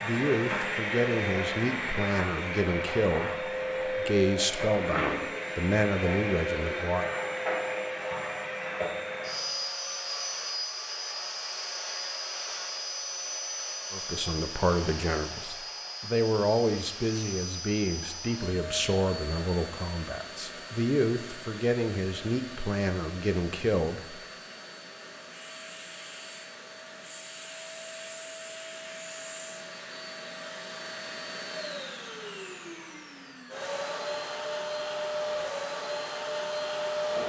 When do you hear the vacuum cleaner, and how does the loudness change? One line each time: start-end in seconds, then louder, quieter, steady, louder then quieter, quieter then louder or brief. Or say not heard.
0.0-37.2 quieter then louder.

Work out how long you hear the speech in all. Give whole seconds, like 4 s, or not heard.
17 s.